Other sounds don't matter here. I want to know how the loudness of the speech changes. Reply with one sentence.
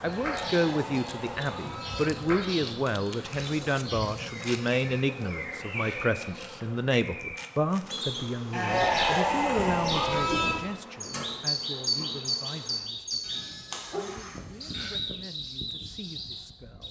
The volume of the speech goes down.